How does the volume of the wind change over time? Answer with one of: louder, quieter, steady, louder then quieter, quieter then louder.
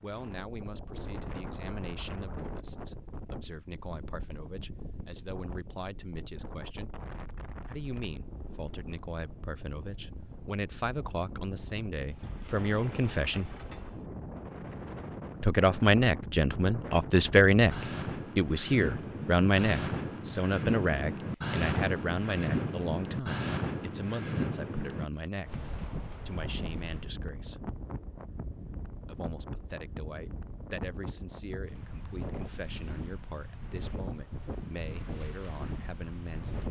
louder then quieter.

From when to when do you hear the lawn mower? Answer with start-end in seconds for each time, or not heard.
not heard.